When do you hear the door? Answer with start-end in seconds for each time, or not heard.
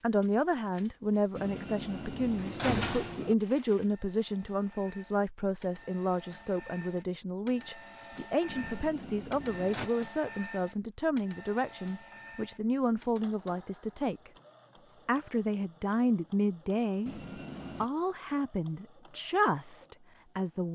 1.4-3.4, 8.4-9.9, 17.1-17.9.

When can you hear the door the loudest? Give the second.
3 s.